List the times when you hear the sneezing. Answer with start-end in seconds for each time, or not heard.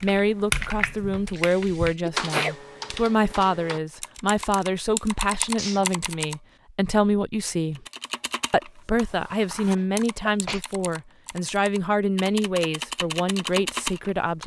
1.3-2.5, 5.3-6.0, 9.8-10.7.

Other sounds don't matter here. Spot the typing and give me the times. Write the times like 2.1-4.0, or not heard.
0.0-6.3, 7.8-14.4.